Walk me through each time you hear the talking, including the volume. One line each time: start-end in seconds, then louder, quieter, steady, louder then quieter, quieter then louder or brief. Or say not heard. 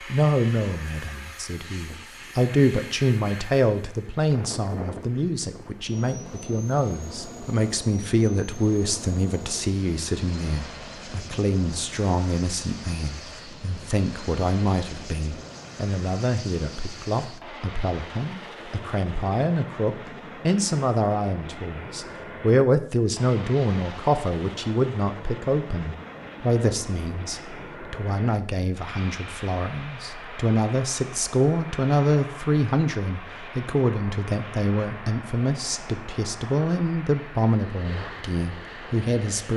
0.0-39.5 steady.